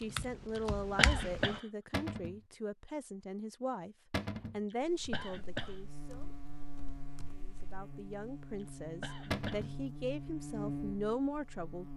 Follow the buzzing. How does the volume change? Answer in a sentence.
The volume of the buzzing goes up.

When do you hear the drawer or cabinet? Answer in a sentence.
You can hear the drawer or cabinet from 1.9 to 2.4 s, from 4.1 to 4.6 s and from 9.3 to 9.8 s.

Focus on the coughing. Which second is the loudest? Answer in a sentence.
The volume of the coughing peaks at 1 second.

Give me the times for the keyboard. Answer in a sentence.
The keyboard can be heard from 0.0 to 1.6 s and from 4.8 to 7.8 s.